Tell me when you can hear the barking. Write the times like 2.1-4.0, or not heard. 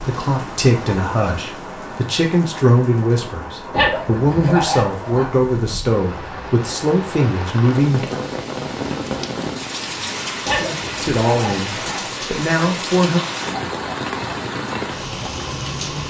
3.7-5.3, 10.4-12.1.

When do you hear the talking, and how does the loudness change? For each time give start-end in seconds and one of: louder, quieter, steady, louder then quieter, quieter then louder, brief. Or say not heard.
0.0-8.1 steady
11.0-13.2 brief.